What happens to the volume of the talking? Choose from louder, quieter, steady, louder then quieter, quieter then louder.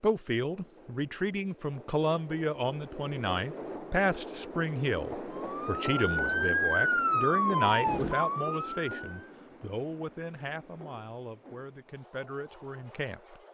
quieter.